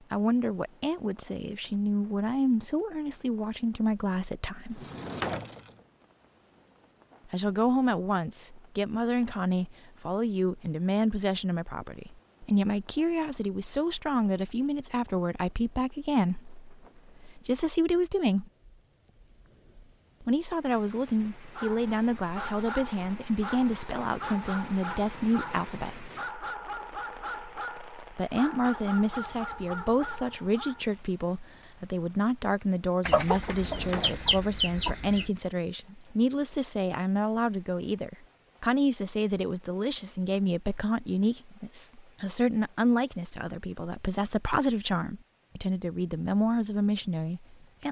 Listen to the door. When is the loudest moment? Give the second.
5 s.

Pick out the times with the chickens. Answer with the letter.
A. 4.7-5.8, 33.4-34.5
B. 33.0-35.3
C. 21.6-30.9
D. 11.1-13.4
B.